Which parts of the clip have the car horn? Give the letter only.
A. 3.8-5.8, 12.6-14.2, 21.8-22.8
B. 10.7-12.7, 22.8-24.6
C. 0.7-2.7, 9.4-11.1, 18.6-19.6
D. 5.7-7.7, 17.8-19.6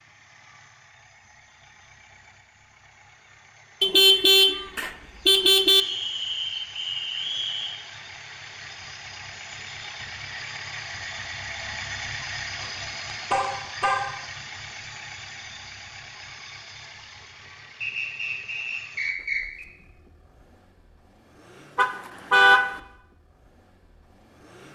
A.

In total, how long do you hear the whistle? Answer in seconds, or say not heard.
4 s.